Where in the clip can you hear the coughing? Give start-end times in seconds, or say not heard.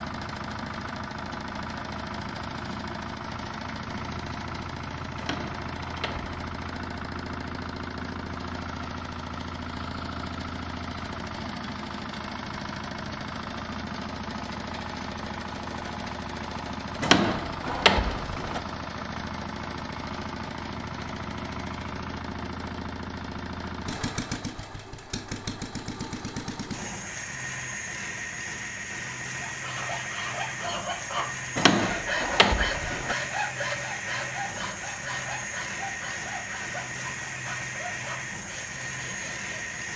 not heard.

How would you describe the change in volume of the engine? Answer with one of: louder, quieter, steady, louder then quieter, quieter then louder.
steady.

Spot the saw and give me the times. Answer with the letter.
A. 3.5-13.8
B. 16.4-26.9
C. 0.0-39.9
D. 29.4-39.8
D.